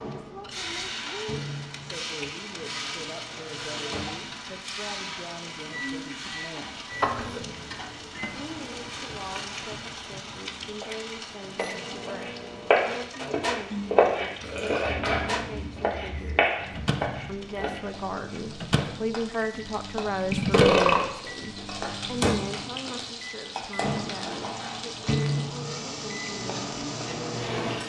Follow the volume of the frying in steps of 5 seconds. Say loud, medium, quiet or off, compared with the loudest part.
loud, loud, medium, medium, loud, loud.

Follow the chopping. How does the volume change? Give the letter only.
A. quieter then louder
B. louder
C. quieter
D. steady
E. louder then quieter
C.